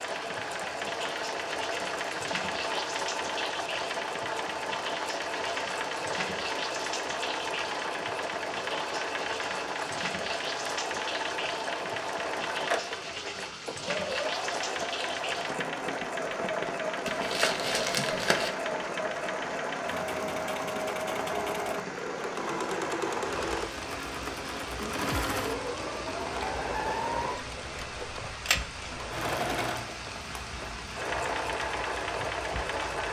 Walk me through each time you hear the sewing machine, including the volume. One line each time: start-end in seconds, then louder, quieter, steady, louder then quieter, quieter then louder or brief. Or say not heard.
0.0-33.0 steady.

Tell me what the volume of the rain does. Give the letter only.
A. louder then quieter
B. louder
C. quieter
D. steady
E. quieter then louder
D.